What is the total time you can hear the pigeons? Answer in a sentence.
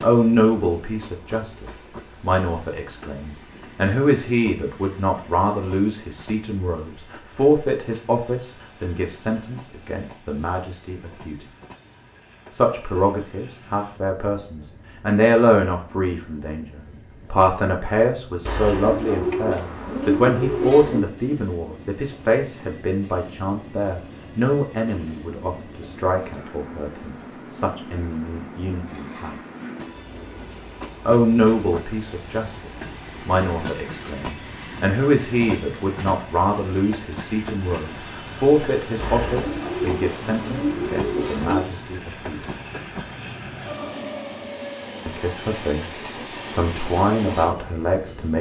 You can hear the pigeons for 5 seconds altogether.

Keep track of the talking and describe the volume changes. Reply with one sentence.
The volume of the talking stays about the same.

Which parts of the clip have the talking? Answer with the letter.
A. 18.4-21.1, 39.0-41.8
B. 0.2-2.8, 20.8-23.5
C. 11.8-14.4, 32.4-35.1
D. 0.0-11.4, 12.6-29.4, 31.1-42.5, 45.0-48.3
D.